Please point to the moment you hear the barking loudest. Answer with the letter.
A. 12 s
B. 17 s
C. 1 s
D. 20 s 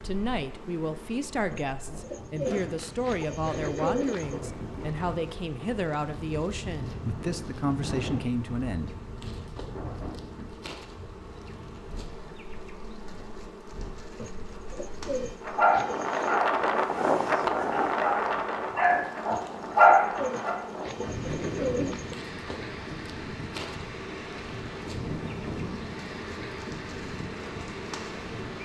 D.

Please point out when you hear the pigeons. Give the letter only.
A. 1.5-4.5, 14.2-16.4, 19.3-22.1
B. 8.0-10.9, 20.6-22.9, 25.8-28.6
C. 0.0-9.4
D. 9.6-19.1
A.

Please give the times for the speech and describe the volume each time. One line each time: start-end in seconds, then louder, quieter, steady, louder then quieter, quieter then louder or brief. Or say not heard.
0.0-9.4 steady.